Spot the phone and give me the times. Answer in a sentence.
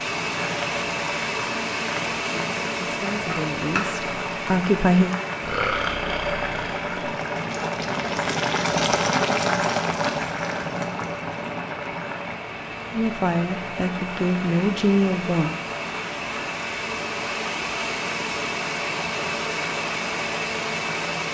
You can't hear the phone here.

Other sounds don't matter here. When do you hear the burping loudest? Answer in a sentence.
The volume of the burping peaks at 6 seconds.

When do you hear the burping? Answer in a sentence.
The burping can be heard from 5.4 to 7.0 s.